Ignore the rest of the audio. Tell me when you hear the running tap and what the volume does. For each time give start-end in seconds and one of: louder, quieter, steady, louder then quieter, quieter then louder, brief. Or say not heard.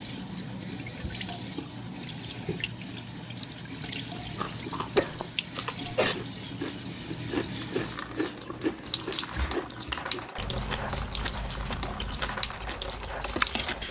0.0-13.8 steady.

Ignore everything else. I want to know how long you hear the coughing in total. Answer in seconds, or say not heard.
2 s.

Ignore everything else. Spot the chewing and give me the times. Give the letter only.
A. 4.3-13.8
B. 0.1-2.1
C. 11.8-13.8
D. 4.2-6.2
A.